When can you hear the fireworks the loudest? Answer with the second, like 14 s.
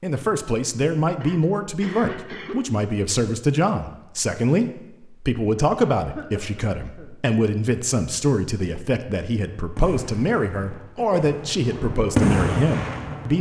12 s.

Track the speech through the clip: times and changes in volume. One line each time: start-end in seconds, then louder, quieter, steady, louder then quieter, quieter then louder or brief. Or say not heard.
0.0-13.3 steady.